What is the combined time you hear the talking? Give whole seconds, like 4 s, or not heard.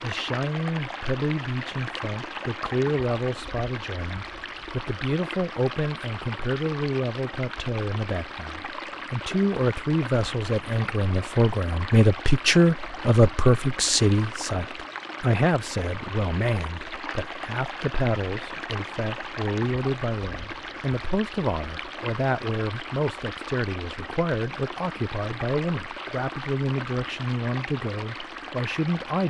29 s.